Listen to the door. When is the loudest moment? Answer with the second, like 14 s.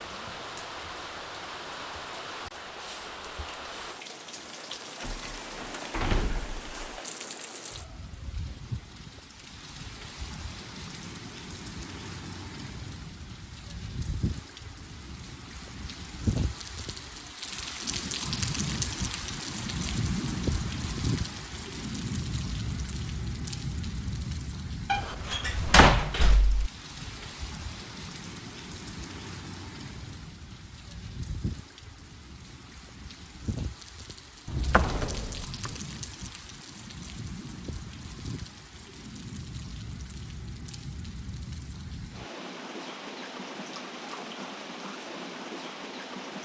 26 s.